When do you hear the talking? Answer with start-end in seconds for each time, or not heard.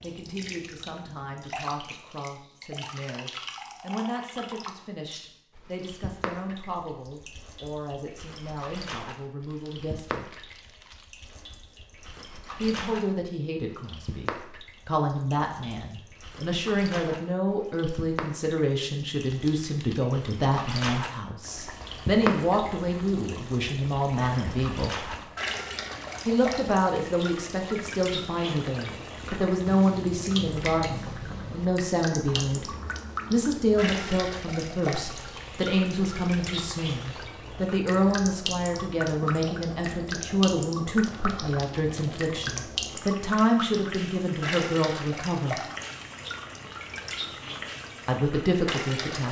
0.0-10.4, 12.6-24.9, 26.2-32.6, 33.3-45.6, 48.0-49.2.